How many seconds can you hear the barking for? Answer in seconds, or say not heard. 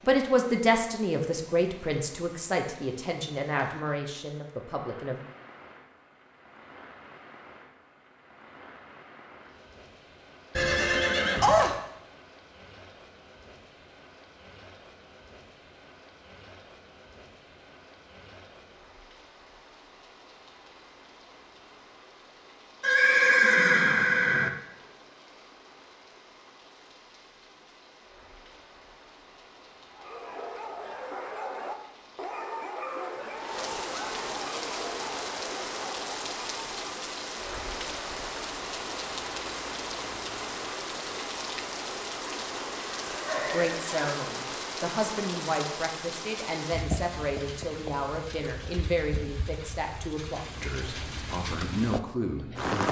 7 s.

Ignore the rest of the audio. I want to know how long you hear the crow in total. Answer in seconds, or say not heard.
not heard.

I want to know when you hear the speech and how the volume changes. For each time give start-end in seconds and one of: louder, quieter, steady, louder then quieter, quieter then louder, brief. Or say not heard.
0.1-5.2 quieter
43.4-52.8 steady.